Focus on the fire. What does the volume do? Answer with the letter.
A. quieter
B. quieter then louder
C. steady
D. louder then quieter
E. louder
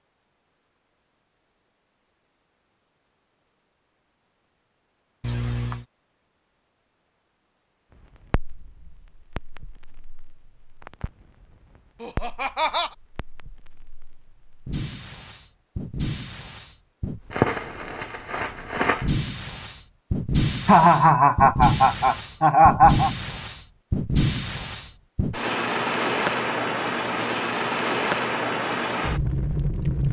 E.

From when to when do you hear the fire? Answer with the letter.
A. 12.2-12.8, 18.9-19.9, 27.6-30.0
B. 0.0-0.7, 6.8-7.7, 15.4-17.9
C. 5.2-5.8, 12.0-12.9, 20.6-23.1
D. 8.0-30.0
D.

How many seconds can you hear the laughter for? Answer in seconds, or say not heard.
4 s.